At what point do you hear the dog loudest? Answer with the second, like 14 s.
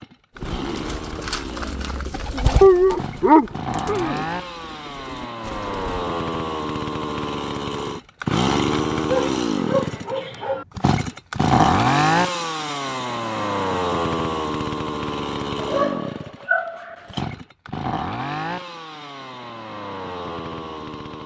3 s.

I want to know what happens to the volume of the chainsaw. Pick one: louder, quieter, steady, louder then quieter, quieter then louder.
louder then quieter.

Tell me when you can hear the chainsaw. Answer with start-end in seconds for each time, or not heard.
0.0-21.2.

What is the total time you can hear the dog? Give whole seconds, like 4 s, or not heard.
5 s.